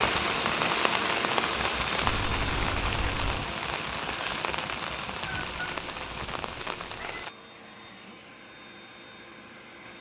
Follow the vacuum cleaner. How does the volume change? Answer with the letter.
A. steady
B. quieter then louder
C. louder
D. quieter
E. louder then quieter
D.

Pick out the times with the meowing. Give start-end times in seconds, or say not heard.
2.0-3.5, 5.2-7.2.